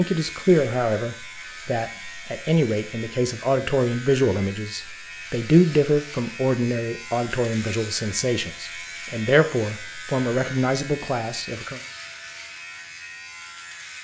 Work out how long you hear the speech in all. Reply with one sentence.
The speech can be heard for 12 seconds in total.